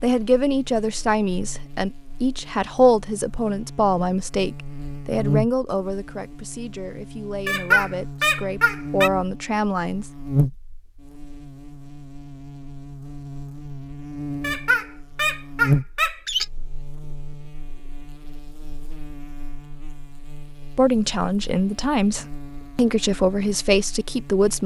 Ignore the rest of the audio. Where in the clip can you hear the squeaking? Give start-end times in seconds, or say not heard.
7.5-9.1, 14.4-16.4.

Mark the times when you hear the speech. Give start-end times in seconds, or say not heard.
0.0-10.1, 20.8-24.6.